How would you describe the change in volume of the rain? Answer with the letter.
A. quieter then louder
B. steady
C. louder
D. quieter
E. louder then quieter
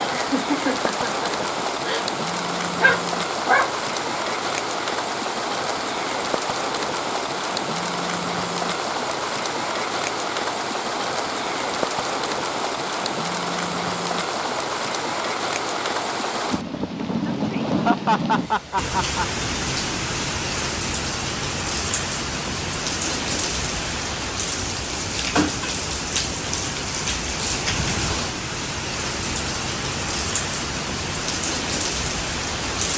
B.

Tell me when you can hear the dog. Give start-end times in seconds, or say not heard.
2.8-3.7.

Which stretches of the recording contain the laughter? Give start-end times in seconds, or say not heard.
0.1-2.0, 17.6-19.2.